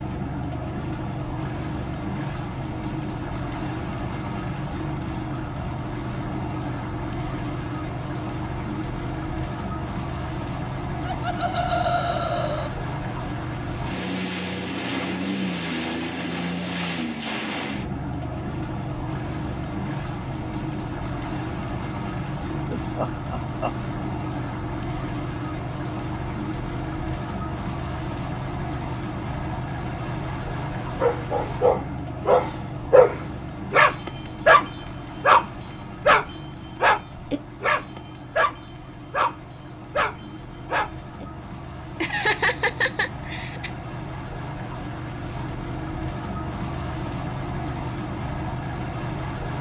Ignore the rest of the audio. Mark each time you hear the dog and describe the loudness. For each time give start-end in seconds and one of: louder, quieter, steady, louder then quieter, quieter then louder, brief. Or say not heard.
30.9-41.2 quieter.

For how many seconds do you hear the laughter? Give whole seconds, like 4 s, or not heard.
5 s.